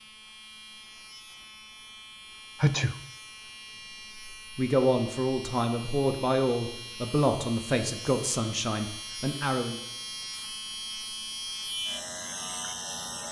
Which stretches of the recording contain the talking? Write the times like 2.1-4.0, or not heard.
4.5-9.8.